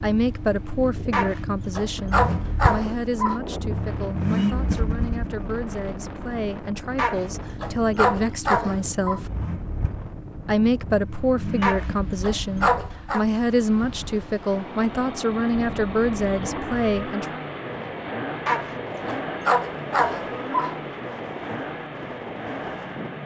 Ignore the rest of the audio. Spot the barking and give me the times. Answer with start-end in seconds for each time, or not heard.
1.1-3.4, 7.0-9.2, 11.6-13.2, 18.4-20.8.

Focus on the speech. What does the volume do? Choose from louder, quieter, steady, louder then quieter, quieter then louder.
quieter then louder.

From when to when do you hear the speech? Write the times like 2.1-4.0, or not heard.
0.0-9.3, 10.4-17.4.